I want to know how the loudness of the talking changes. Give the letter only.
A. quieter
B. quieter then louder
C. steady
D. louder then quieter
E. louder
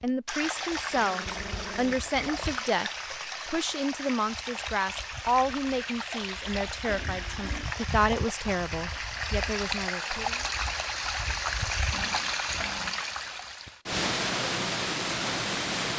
C.